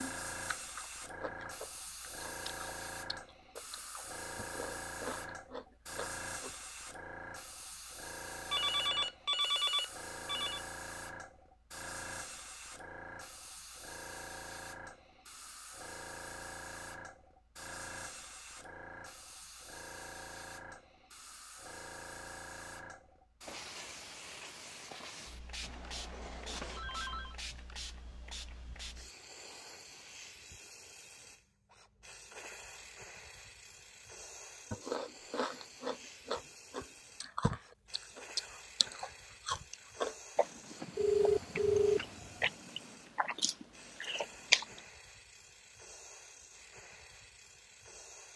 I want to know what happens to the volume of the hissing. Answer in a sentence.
The loudness of the hissing goes down.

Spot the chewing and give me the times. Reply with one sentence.
You can hear the chewing from 0.0 to 6.5 s and from 34.7 to 44.8 s.